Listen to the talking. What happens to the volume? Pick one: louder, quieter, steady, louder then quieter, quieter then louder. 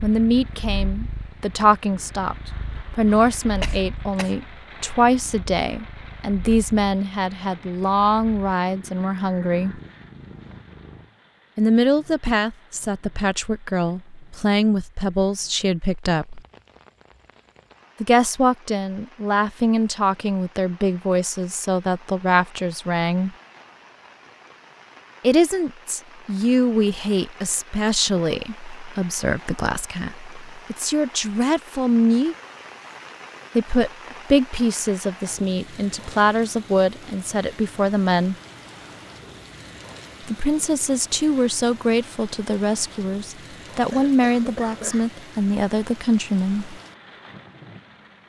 steady.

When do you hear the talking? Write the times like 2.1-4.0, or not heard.
0.0-9.8, 11.6-16.4, 18.0-23.3, 25.2-32.4, 33.5-38.4, 40.2-46.8.